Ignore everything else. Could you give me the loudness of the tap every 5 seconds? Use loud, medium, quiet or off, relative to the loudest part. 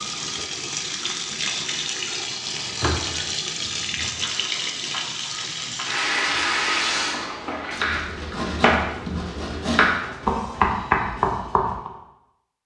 loud, loud, off.